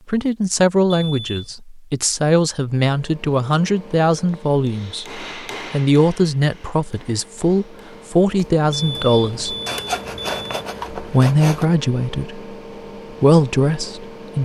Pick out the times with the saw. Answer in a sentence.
The saw can be heard from 9.7 to 11.7 s.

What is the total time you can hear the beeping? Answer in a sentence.
The beeping can be heard for 3 seconds in total.